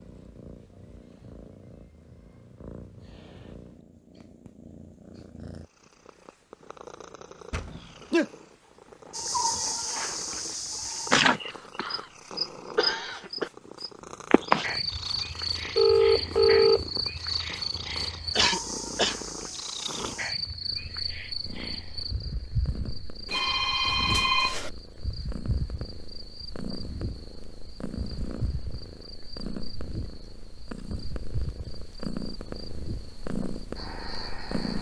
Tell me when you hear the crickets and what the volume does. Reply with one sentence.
The crickets can be heard from 9.1 to 34.7 s, getting quieter.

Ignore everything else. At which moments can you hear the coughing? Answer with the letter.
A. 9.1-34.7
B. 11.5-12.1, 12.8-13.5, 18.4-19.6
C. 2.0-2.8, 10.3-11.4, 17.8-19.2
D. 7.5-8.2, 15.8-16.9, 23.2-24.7
B.